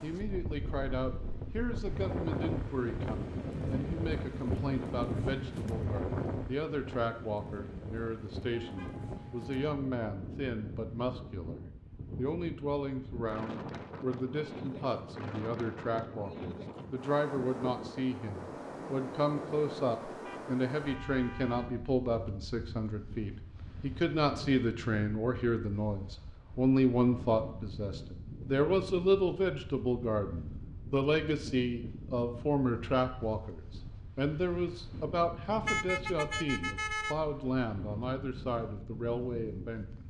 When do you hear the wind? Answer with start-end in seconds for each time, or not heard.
0.0-40.0.